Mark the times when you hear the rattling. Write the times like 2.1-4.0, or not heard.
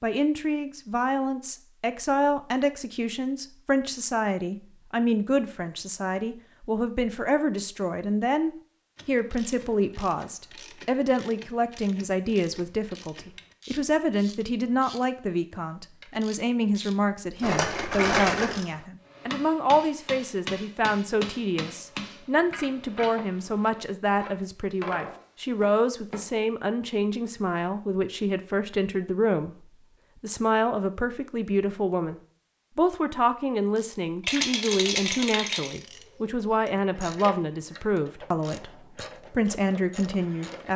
17.4-18.6, 34.2-35.8.